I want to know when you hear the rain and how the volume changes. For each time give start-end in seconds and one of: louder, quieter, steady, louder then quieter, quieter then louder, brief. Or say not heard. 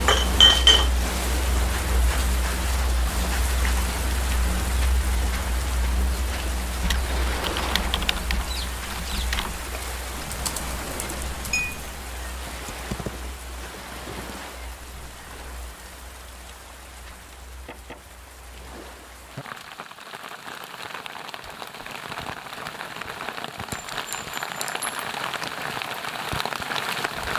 0.0-27.3 quieter then louder.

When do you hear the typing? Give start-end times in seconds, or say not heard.
6.8-15.5.